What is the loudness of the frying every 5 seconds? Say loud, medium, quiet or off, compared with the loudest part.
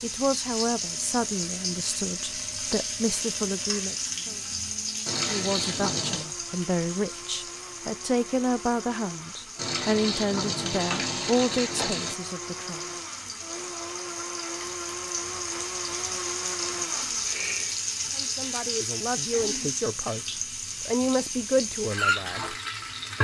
loud, medium, medium, loud, loud.